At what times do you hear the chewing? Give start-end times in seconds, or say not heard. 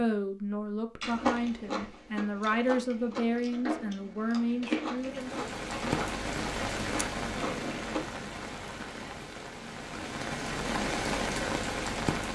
1.0-8.0.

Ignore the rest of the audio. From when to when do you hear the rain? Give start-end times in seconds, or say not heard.
5.0-12.3.